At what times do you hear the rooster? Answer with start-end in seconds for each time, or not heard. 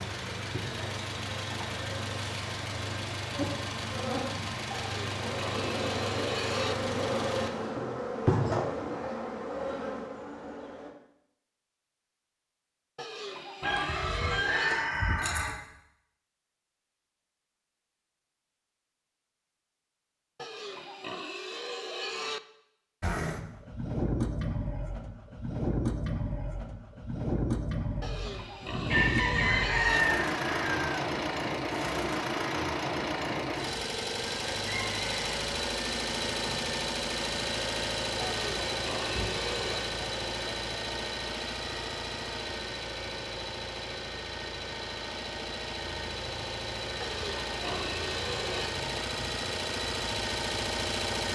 13.6-15.6, 28.9-31.0, 34.6-35.3.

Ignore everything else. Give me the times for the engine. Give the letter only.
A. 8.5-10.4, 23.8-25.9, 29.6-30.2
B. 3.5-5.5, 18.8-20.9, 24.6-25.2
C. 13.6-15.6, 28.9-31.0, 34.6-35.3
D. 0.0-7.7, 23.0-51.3
D.